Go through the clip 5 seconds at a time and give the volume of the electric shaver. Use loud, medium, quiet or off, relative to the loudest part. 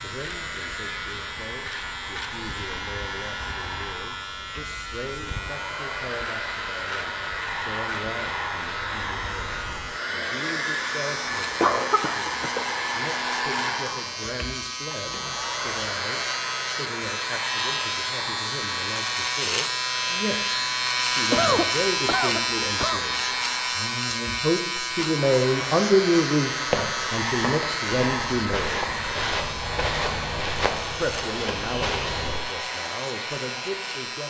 medium, medium, medium, loud, loud, medium, medium.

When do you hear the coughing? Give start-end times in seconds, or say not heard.
11.6-12.8, 21.3-23.0.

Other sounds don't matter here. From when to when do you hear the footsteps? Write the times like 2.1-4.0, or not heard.
26.7-32.4.